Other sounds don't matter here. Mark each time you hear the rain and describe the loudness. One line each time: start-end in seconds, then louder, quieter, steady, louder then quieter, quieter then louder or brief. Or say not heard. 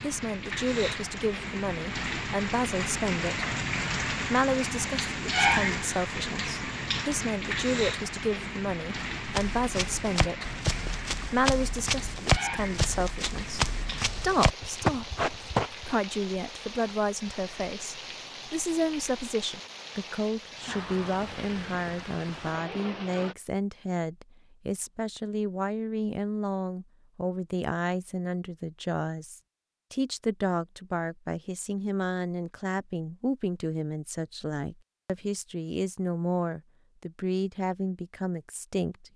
0.0-23.4 quieter.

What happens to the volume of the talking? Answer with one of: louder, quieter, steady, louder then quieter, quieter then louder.
steady.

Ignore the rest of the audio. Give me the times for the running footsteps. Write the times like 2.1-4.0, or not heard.
9.2-16.0.